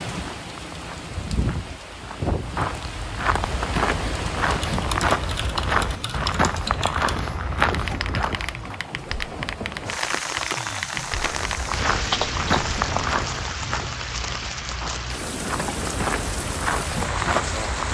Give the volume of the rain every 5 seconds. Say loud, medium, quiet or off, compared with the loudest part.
loud, medium, loud, loud.